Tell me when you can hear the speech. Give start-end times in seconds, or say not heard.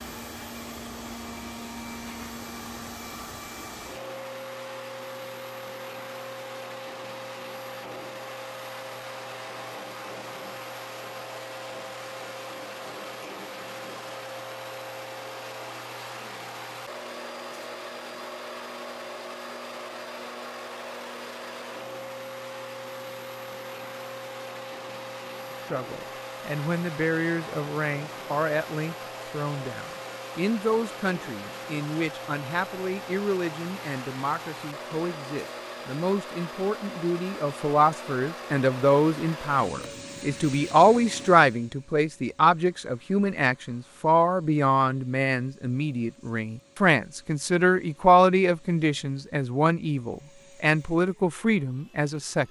25.7-52.4.